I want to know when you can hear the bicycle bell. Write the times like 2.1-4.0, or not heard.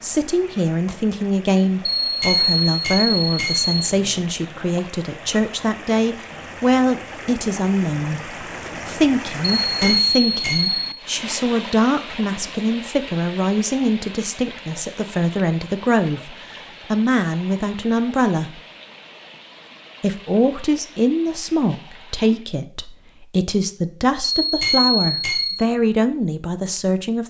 1.9-3.8, 9.6-10.8, 24.2-25.6.